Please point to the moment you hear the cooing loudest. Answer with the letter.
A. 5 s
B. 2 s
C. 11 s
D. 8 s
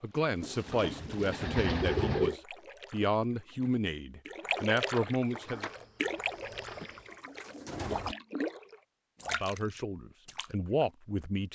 B.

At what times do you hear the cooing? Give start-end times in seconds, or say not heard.
0.4-2.4, 6.8-8.2.